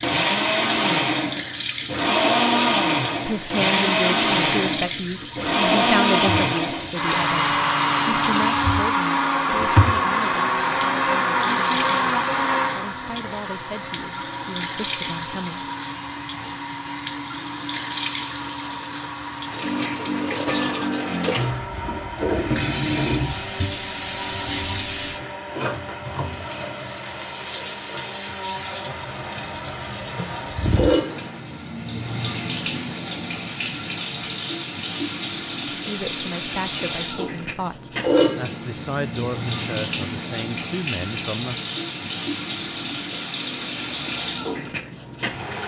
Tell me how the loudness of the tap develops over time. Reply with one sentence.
The loudness of the tap stays about the same.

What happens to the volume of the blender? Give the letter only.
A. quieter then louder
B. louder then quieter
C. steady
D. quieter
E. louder
D.